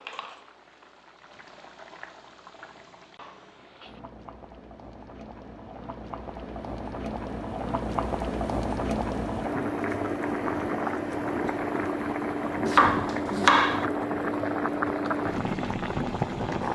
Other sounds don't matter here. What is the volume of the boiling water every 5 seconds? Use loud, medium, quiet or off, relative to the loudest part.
quiet, loud, loud, loud.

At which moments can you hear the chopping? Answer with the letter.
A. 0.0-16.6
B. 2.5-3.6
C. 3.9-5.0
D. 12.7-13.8
D.